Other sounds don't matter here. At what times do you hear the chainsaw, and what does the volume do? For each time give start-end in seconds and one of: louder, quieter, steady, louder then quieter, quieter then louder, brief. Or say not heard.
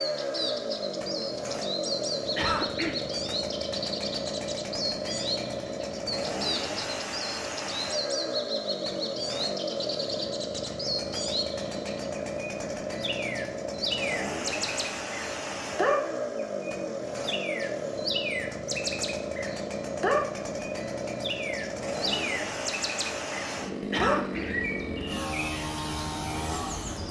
0.0-27.0 steady.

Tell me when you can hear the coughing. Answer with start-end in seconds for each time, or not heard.
2.2-3.0, 23.9-24.4.